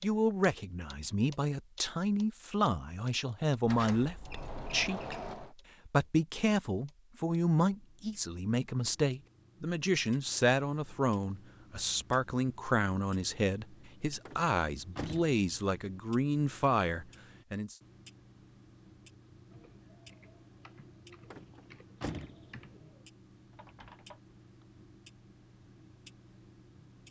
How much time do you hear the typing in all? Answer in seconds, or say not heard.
5 s.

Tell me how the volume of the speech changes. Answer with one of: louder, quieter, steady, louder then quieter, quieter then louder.
steady.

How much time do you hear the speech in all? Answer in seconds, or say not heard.
18 s.